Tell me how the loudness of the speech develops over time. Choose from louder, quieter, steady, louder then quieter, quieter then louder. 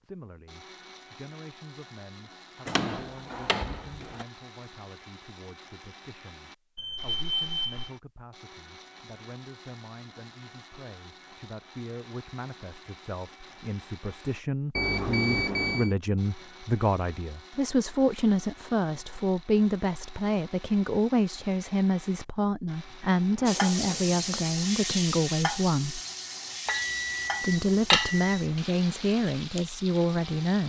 louder.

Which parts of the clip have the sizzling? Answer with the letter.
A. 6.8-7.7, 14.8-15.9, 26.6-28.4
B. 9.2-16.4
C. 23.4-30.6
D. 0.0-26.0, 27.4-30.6
C.